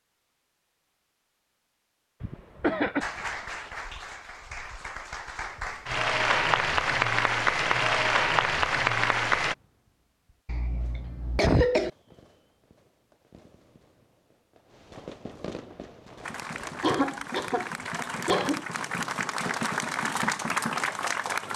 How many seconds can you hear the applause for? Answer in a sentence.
The applause can be heard for 12 seconds in total.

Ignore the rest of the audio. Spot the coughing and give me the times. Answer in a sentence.
The coughing can be heard from 2.2 to 3.0 s, from 10.4 to 11.9 s and from 16.8 to 18.9 s.